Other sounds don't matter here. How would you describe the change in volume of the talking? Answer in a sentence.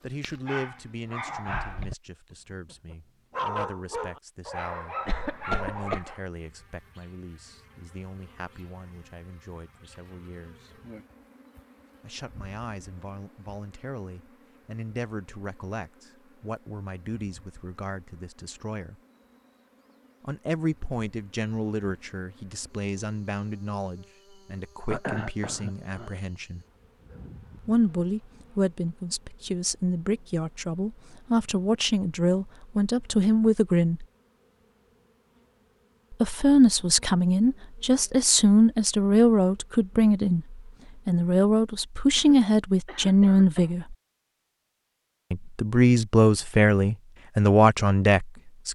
The volume of the talking goes up.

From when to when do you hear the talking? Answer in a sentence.
You can hear the talking from 0.0 to 10.8 s, from 12.0 to 19.0 s, from 20.2 to 26.6 s, from 27.6 to 34.0 s, from 36.1 to 44.0 s and from 45.3 to 48.7 s.